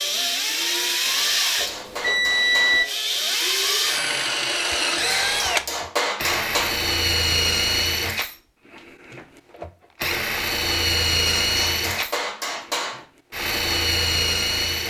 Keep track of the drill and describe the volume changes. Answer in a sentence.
The volume of the drill stays about the same.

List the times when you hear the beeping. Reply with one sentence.
The beeping can be heard from 1.6 to 2.9 s.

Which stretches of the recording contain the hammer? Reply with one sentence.
You can hear the hammer from 1.2 to 2.9 s, from 5.1 to 6.8 s and from 11.4 to 13.0 s.